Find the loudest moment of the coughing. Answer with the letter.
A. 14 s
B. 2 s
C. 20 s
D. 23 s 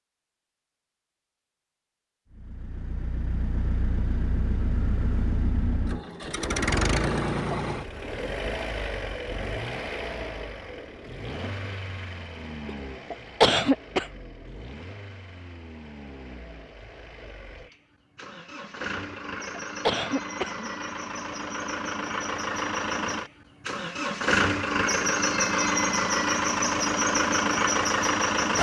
A.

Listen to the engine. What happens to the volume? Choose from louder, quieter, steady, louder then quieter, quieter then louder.
quieter then louder.